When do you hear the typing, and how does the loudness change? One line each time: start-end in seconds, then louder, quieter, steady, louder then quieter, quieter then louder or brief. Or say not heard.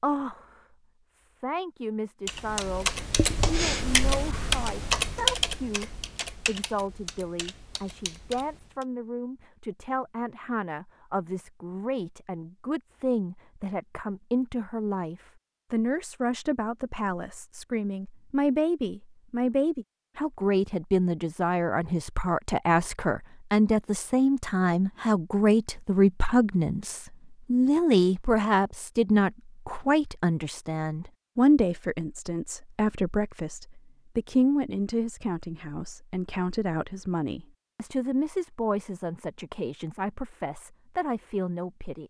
2.2-8.8 quieter.